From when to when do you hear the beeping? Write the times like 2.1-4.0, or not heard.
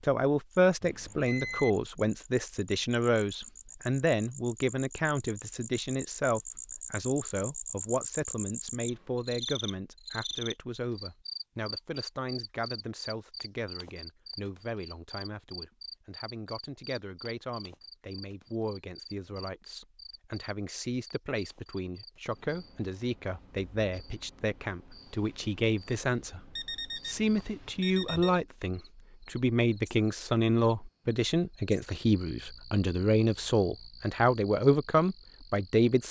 0.8-1.7, 26.6-28.4.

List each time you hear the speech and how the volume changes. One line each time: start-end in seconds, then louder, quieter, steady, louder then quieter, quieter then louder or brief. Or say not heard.
0.0-36.0 quieter then louder.